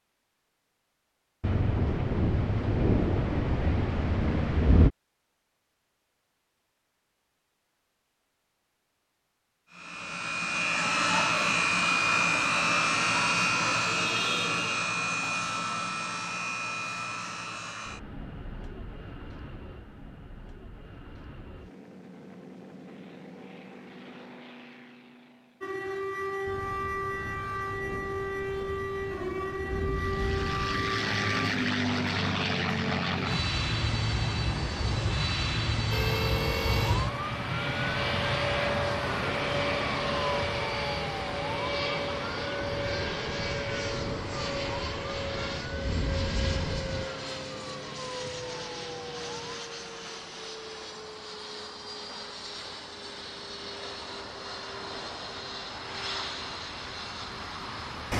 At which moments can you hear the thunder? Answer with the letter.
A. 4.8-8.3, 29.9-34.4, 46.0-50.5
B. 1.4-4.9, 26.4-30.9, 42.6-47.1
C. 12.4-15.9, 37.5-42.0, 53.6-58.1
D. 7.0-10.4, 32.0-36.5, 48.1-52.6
B.